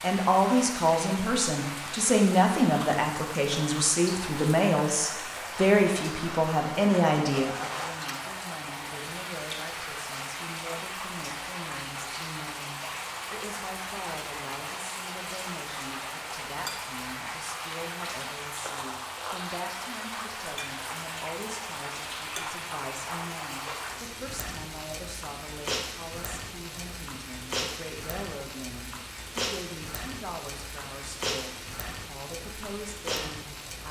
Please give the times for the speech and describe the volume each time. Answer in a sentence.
The speech can be heard from 0.0 to 33.8 s, getting quieter.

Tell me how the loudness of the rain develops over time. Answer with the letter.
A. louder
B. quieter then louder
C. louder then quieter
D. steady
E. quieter
D.